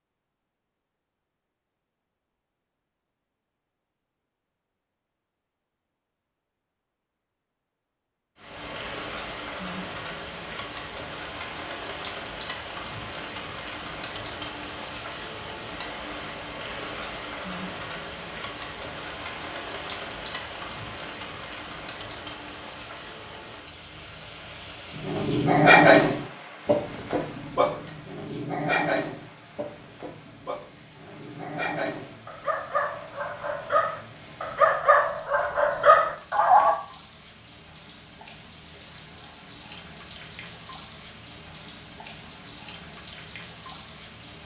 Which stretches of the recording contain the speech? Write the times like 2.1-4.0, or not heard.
not heard.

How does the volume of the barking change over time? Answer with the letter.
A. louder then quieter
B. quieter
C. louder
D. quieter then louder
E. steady
D.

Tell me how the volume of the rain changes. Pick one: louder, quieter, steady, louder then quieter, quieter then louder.
quieter then louder.